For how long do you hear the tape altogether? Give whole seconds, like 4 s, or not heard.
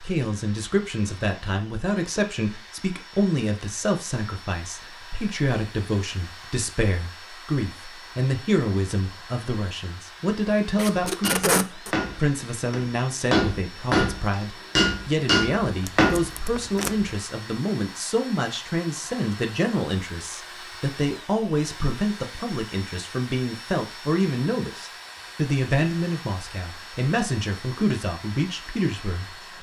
3 s.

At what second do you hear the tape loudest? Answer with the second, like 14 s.
11 s.